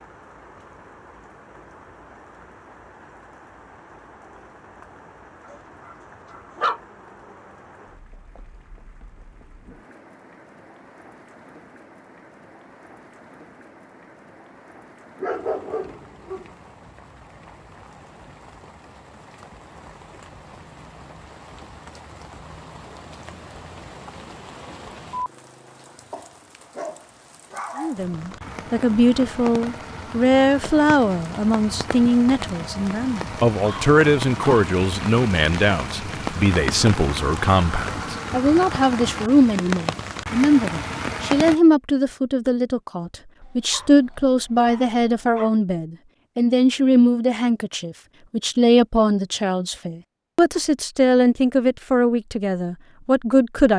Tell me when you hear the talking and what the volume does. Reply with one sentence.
The talking can be heard from 27.8 to 53.7 s, at a steady volume.